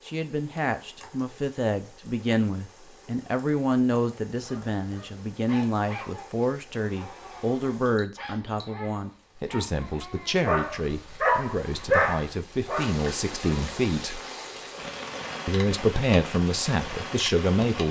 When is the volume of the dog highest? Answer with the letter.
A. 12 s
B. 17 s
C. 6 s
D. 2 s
A.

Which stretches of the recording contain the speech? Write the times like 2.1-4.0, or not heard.
0.1-14.2, 15.4-17.8.